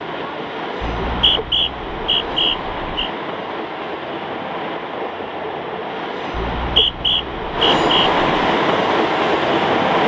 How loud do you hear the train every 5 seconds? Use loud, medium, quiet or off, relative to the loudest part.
medium, loud.